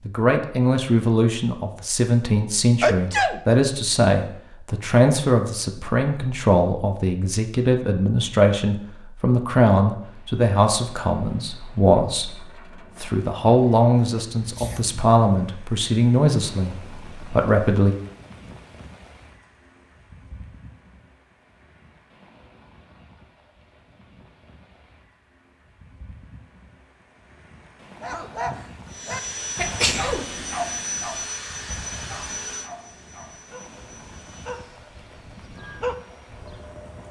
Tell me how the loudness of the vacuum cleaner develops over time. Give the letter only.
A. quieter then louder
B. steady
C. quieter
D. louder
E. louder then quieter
C.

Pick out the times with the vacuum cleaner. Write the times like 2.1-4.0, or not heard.
28.9-37.0.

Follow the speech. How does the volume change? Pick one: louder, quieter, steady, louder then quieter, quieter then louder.
steady.